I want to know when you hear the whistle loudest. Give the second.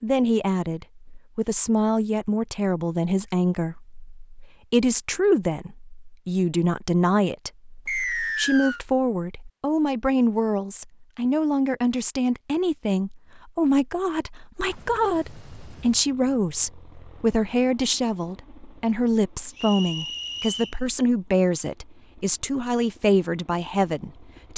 8 s.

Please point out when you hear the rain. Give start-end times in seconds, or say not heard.
not heard.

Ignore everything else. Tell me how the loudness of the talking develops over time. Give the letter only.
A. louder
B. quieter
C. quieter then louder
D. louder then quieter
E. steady
E.